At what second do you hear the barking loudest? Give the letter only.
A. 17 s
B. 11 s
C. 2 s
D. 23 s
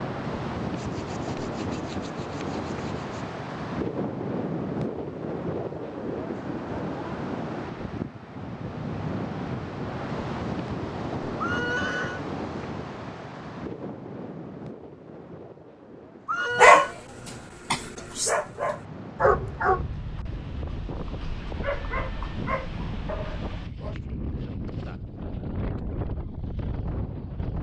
A.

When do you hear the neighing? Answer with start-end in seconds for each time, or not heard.
11.4-12.2, 16.2-16.9.